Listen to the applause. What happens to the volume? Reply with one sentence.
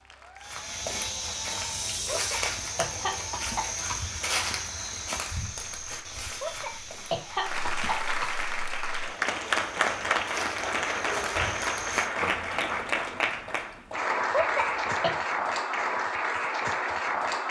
The loudness of the applause goes up.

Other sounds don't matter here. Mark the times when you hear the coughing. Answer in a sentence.
The coughing can be heard from 2.0 to 4.0 s, from 6.4 to 8.3 s and from 14.3 to 15.1 s.